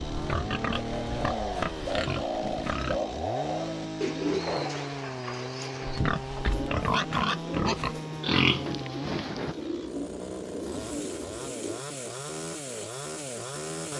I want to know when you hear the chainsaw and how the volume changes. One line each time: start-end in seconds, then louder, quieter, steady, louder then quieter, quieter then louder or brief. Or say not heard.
0.0-13.9 steady.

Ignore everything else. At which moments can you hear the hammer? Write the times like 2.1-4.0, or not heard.
not heard.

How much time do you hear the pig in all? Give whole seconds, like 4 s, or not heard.
7 s.